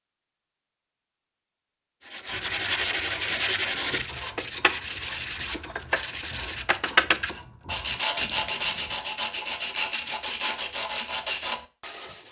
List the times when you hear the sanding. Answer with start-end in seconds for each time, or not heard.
2.0-12.2.